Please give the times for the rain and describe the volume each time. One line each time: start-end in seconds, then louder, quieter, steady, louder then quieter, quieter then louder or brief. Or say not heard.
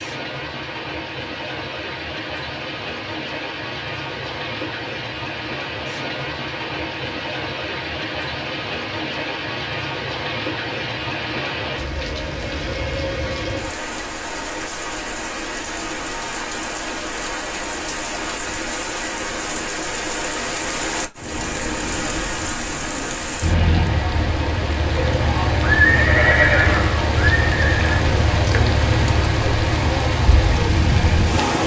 0.0-31.6 louder.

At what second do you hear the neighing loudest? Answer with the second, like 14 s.
26 s.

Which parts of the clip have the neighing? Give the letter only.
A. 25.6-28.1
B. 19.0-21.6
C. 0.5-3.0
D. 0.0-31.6
A.